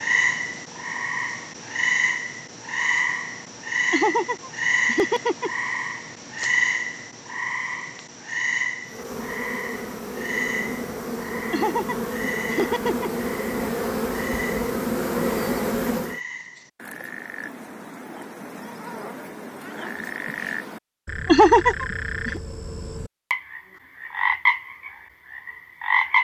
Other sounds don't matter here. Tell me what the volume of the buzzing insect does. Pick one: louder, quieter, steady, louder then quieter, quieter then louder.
louder.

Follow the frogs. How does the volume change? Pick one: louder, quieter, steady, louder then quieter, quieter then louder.
quieter then louder.